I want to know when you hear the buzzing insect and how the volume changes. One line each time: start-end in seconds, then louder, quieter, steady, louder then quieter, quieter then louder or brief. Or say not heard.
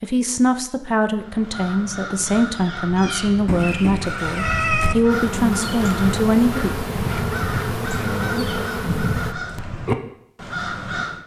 5.1-9.3 steady.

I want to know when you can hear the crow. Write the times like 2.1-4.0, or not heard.
1.2-11.2.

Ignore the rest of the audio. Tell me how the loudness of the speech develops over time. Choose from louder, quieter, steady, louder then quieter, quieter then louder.
steady.